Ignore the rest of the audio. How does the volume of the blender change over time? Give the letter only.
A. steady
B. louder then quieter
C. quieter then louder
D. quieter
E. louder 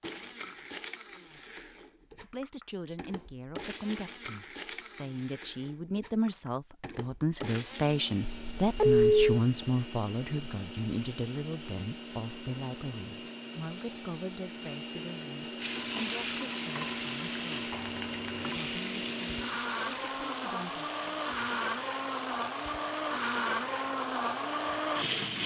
E.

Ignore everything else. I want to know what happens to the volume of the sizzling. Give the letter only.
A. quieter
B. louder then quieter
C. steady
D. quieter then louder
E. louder
A.